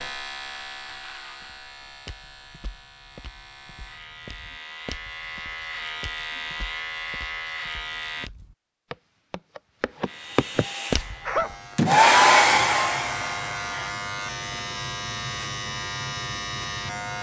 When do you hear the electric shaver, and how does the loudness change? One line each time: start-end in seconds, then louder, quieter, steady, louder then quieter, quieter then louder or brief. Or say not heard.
0.0-8.3 quieter then louder
10.1-17.1 louder.